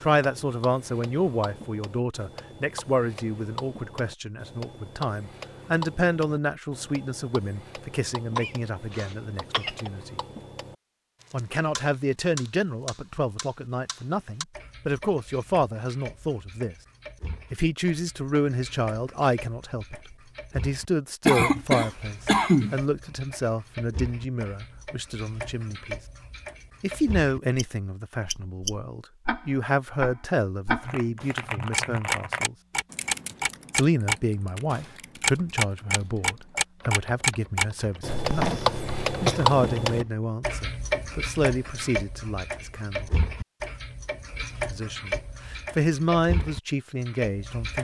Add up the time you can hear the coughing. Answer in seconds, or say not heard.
4 s.